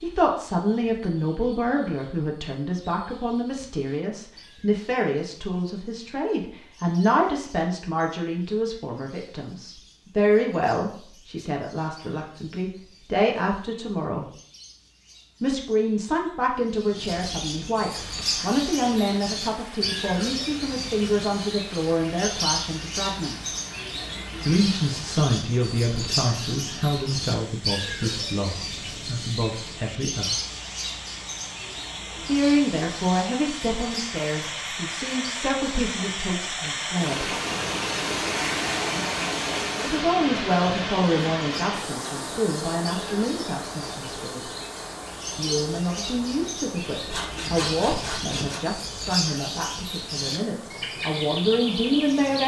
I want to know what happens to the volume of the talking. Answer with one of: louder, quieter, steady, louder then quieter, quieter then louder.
steady.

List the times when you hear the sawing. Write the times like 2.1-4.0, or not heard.
47.1-48.6.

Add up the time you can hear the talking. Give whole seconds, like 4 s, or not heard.
45 s.